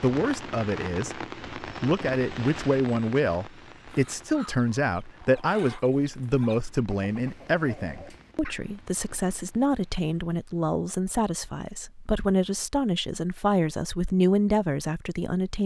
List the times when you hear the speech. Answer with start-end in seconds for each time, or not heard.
0.0-15.6.